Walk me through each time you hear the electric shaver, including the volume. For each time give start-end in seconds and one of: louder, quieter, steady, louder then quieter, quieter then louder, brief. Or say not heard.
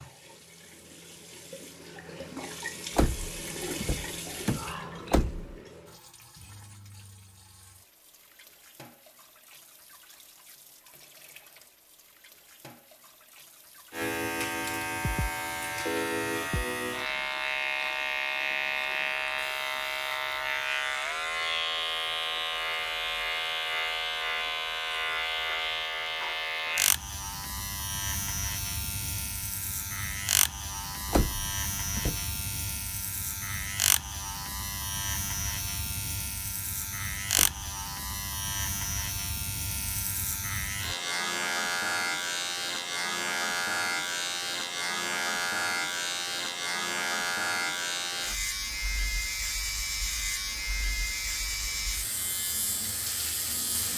13.9-53.9 steady.